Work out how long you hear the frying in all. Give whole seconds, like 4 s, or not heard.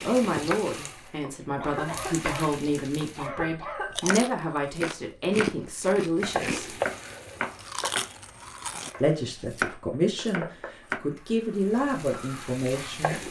10 s.